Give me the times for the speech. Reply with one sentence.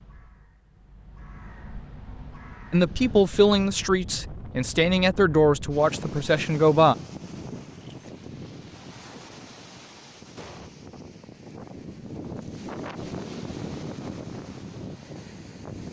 The speech can be heard from 2.7 to 7.0 s.